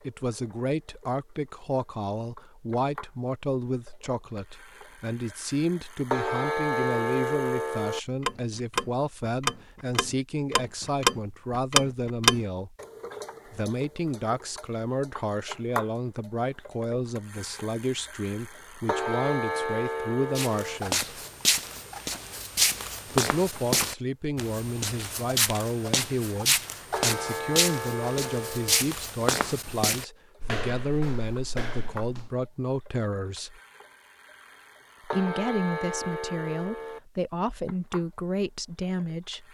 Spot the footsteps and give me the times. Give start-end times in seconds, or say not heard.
20.4-32.3.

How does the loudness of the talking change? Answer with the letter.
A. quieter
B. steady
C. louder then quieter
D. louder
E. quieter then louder
B.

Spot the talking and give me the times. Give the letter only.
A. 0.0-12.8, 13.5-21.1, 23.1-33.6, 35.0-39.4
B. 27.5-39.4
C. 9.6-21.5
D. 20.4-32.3
A.